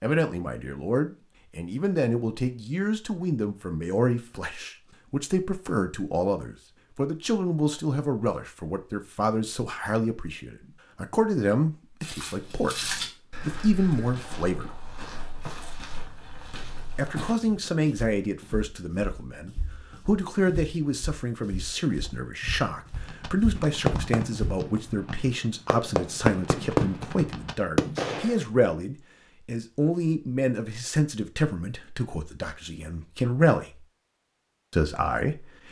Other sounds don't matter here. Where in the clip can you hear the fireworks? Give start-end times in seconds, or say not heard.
22.9-28.4.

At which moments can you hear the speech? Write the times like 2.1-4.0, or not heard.
0.0-14.8, 16.9-33.9, 34.7-35.6.